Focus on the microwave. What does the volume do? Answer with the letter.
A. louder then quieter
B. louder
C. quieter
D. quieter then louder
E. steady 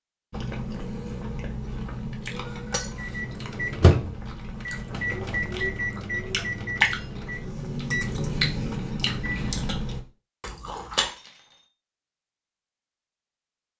C.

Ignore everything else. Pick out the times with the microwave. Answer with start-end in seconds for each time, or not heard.
2.8-9.9.